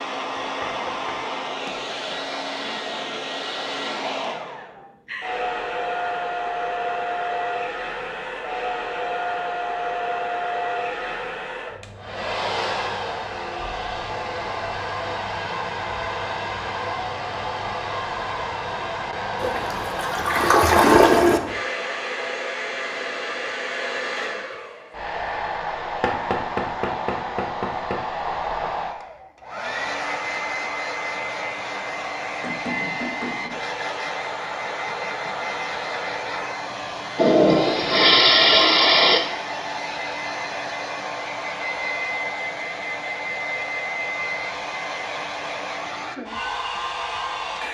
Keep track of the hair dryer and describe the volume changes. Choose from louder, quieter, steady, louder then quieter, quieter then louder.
steady.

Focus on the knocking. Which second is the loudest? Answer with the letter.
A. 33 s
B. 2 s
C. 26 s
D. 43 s
C.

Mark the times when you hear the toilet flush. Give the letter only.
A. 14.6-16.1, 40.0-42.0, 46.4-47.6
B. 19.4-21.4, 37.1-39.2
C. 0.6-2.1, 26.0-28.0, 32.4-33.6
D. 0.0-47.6
B.